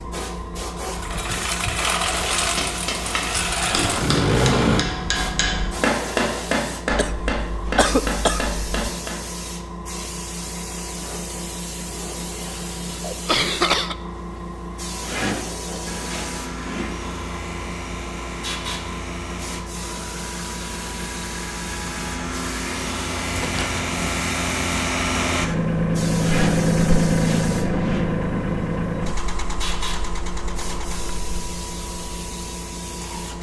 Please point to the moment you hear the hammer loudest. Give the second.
6 s.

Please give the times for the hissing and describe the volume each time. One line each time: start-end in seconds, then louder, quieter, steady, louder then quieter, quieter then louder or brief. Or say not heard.
0.0-33.3 steady.